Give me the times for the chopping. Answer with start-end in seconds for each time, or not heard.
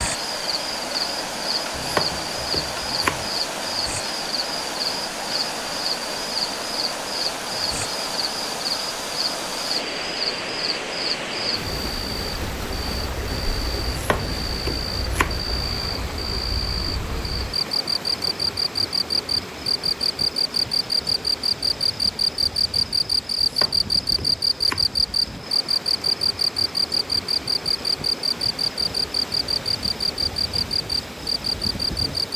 1.7-3.3, 13.8-15.4, 23.4-24.9.